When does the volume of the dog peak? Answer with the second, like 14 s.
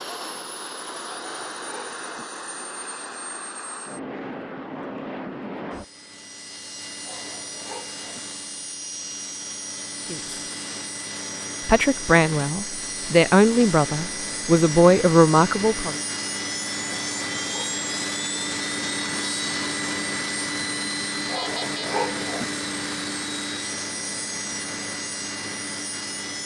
22 s.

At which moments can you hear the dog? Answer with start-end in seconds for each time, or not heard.
1.1-2.2, 7.0-8.2, 16.9-17.8, 21.2-22.4.